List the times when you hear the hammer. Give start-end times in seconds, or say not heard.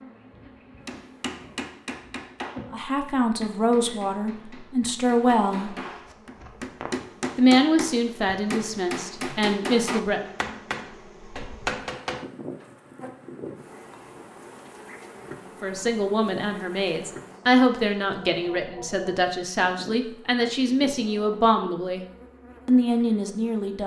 0.8-12.7.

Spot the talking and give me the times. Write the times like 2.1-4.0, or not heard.
2.7-5.8, 7.3-10.3, 15.6-22.1, 22.6-23.8.